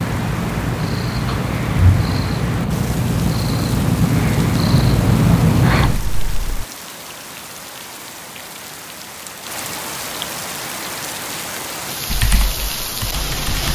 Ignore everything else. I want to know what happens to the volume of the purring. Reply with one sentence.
The volume of the purring goes up.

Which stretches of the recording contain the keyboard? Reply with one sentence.
The keyboard can be heard from 12.1 to 13.6 s.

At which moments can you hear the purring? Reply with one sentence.
You can hear the purring from 0.0 to 6.7 s.